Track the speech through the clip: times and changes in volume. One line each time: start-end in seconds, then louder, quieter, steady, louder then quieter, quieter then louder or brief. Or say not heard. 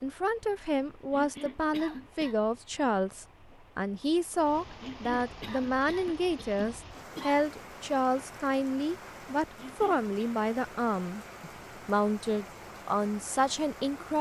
0.0-14.1 steady.